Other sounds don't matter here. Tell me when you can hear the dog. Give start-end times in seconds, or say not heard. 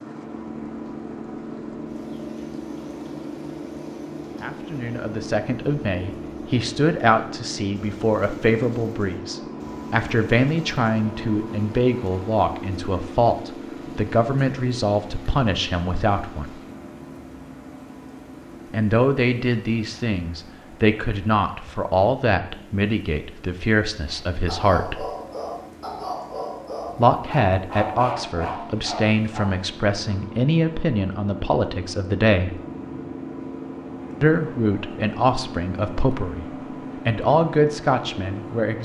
24.1-29.6.